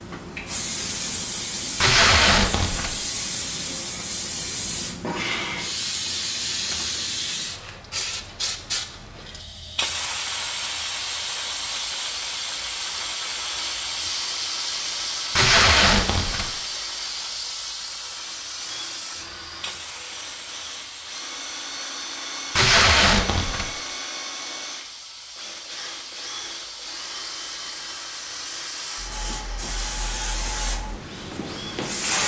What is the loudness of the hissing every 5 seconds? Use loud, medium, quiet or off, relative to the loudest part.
loud, loud, loud, loud, medium, medium, loud.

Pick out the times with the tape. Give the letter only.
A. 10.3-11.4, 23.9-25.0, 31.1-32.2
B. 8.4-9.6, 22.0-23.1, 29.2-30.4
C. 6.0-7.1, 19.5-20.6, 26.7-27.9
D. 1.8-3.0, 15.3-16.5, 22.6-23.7
D.